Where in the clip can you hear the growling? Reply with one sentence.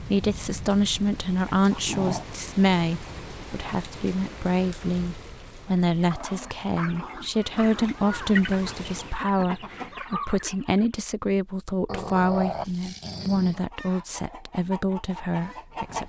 You can hear the growling from 1.6 to 2.2 s, from 6.1 to 8.0 s and from 11.8 to 13.6 s.